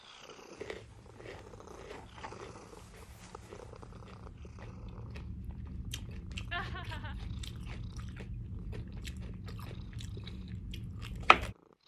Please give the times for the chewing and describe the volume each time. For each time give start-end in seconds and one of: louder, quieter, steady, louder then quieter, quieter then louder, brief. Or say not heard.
0.6-11.6 louder.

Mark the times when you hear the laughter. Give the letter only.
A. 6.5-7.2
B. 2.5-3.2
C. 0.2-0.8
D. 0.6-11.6
A.